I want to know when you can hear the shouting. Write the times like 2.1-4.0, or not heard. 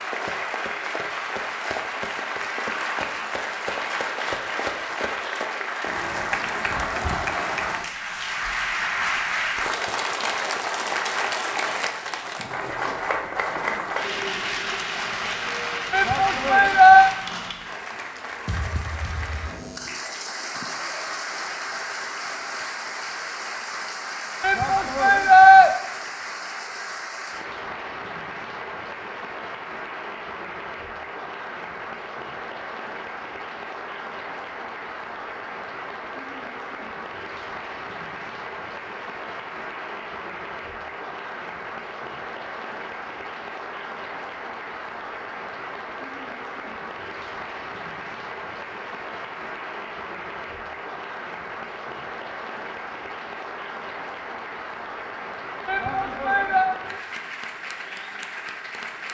15.9-17.1, 24.4-25.7, 55.6-56.7.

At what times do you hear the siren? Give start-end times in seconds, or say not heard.
not heard.